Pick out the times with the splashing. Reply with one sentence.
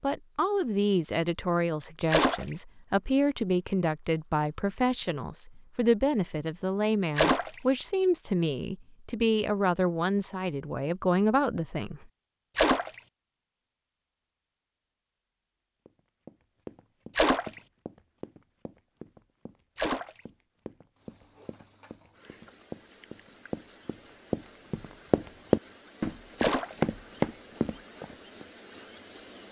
You can hear the splashing from 2.1 to 2.5 s, from 7.2 to 7.6 s, from 12.6 to 13.0 s, from 17.1 to 17.6 s, from 19.8 to 20.2 s and from 26.4 to 26.9 s.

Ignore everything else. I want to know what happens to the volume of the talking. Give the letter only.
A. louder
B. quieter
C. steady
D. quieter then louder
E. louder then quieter
C.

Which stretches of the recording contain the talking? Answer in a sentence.
The talking can be heard from 0.0 to 12.1 s.